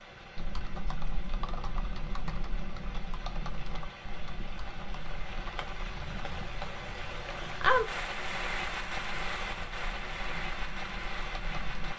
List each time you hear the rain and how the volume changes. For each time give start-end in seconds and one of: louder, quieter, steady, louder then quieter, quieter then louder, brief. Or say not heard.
0.0-11.9 louder then quieter.